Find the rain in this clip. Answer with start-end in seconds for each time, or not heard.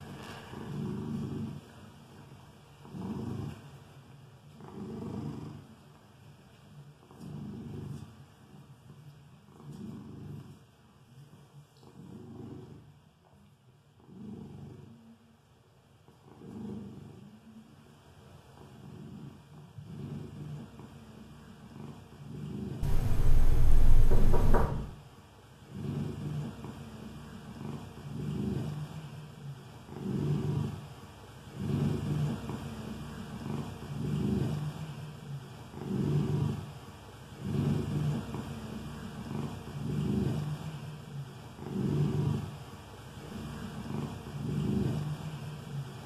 not heard.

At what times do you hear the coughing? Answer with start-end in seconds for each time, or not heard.
not heard.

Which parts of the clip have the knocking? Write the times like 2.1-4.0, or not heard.
22.8-24.7.